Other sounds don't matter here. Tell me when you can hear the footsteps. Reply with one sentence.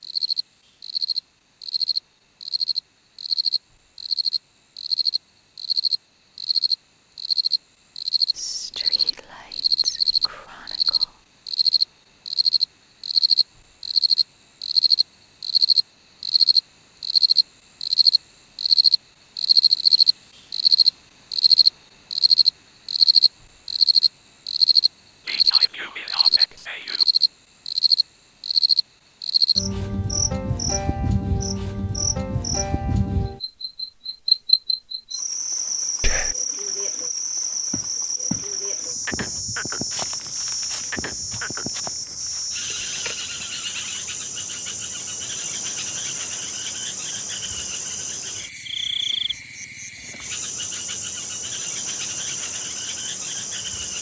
The footsteps can be heard from 37.7 to 38.5 s and from 39.2 to 43.5 s.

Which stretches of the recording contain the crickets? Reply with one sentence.
You can hear the crickets from 0.0 to 53.9 s.